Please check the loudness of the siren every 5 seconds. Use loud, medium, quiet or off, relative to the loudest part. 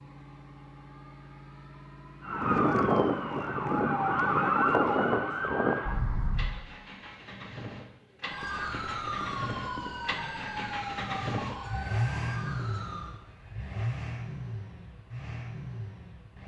loud, medium, quiet, off.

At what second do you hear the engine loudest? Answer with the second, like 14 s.
12 s.